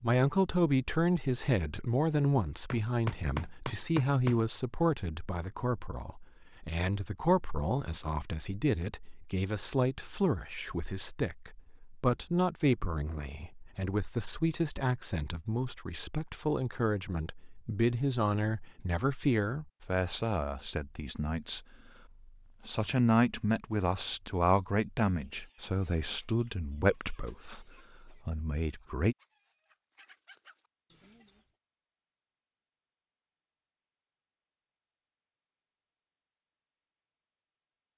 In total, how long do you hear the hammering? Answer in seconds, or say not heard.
2 s.